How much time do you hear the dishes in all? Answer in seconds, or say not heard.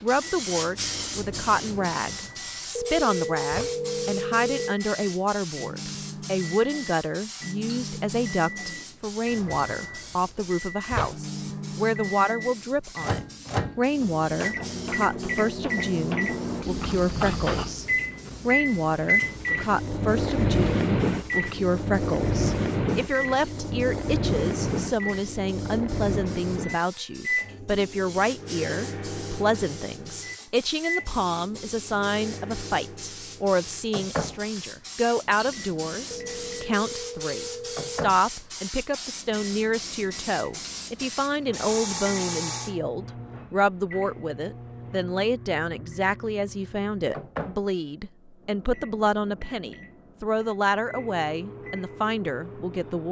not heard.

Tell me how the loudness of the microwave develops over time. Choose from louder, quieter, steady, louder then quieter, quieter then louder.
louder then quieter.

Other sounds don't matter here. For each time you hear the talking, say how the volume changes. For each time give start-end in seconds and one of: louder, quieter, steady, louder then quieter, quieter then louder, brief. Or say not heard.
0.0-17.9 steady
18.4-53.0 steady.